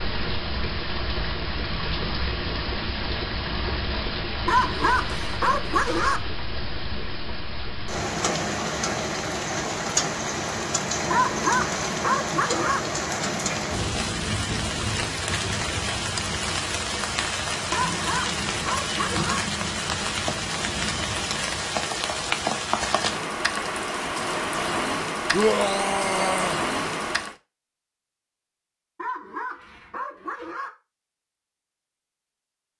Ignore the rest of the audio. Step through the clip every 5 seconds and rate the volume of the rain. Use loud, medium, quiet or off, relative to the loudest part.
loud, loud, loud, loud, loud, loud, off.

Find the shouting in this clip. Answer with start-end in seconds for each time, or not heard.
25.3-26.6.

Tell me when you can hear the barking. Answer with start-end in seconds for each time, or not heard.
4.5-6.2, 11.1-12.8, 17.7-19.4, 28.9-30.7.